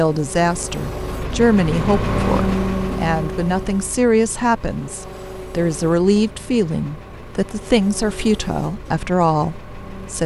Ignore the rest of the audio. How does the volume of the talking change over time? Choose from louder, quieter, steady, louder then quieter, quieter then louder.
steady.